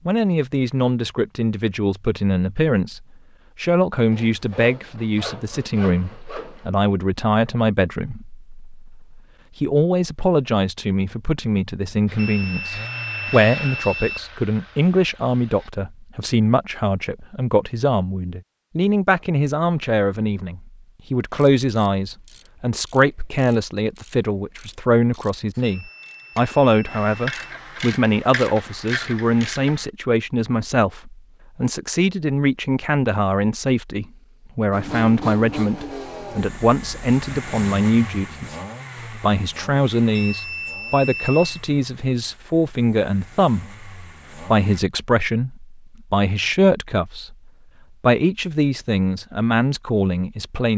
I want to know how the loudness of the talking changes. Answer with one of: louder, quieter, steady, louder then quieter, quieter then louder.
steady.